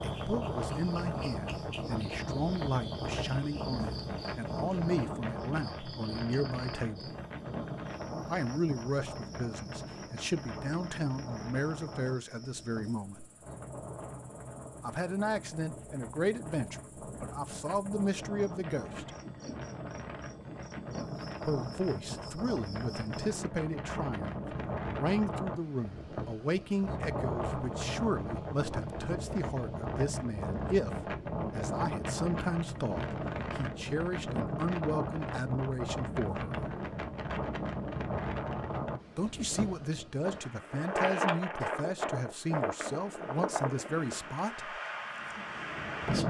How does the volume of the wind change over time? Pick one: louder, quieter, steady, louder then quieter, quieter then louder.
quieter then louder.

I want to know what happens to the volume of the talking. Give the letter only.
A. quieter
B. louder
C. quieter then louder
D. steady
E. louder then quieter
D.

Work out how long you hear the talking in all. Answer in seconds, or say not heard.
37 s.